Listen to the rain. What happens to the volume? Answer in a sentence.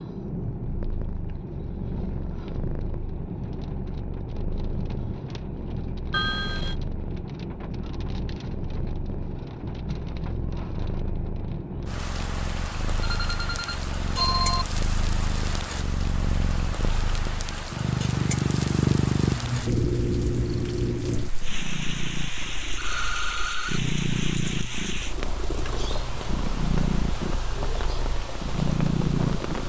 The loudness of the rain stays about the same.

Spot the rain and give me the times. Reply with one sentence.
The rain can be heard from 0.0 to 29.6 s.